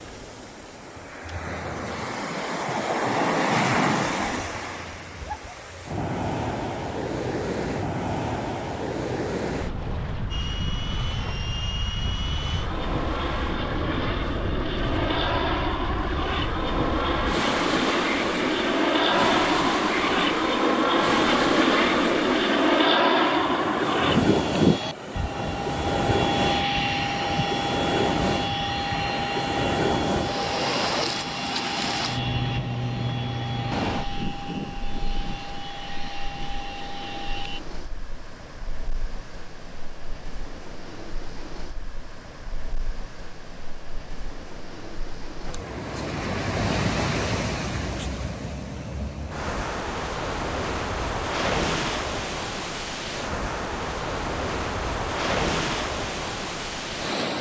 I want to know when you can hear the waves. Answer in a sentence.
You can hear the waves from 0.0 to 57.3 s.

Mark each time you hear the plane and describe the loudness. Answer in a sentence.
You can hear the plane from 10.3 to 37.6 s, getting louder then quieter.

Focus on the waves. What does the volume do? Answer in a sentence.
The loudness of the waves goes down, then up.